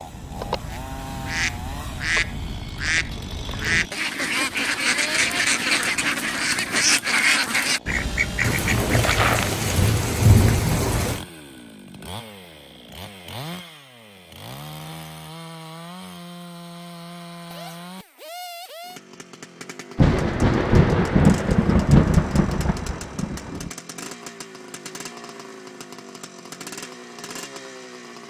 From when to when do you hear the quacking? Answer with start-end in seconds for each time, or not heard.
0.0-9.7.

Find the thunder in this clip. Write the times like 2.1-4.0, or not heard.
8.4-11.2, 19.9-23.7.